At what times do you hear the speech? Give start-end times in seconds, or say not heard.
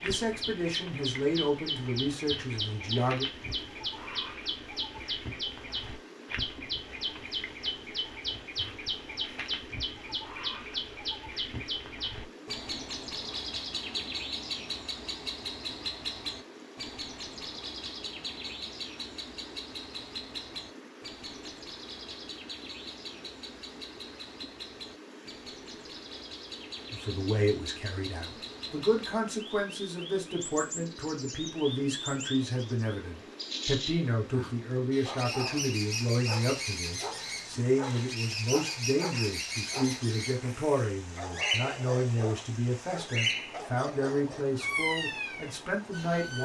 0.0-3.2, 26.9-46.3.